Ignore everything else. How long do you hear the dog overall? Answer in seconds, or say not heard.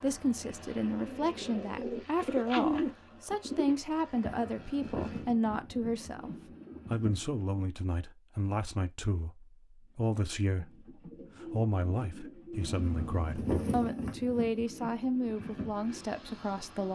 not heard.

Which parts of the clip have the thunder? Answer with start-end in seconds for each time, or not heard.
12.5-13.7.